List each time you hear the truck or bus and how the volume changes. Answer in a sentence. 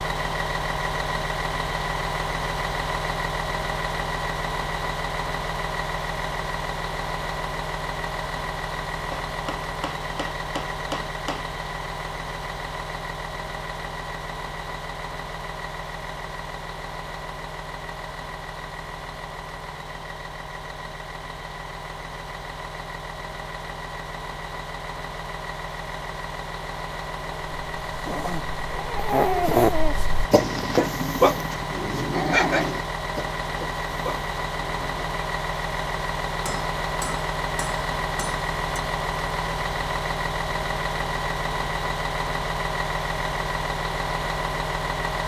You can hear the truck or bus from 0.0 to 45.2 s, getting quieter then louder.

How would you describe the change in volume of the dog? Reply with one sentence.
The volume of the dog goes down.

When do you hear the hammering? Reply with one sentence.
The hammering can be heard from 9.1 to 11.5 s and from 36.5 to 38.8 s.